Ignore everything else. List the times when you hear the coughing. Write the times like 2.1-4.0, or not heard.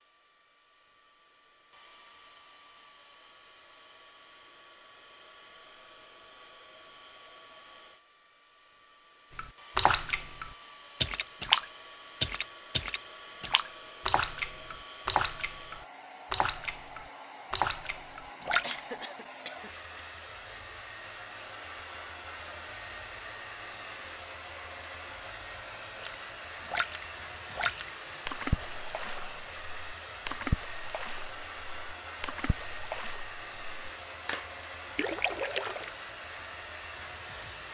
18.6-19.8.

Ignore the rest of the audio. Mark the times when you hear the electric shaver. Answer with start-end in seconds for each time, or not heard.
not heard.